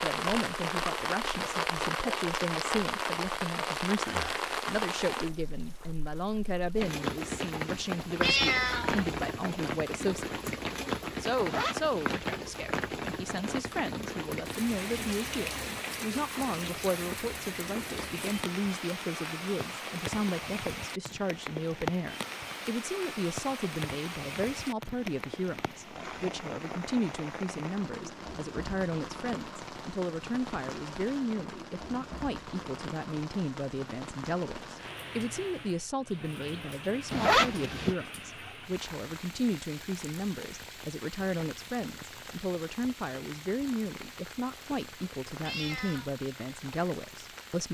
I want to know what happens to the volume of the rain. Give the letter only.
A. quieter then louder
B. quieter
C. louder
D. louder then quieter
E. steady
B.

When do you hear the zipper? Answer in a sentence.
You can hear the zipper from 11.3 to 12.2 s and from 37.1 to 38.0 s.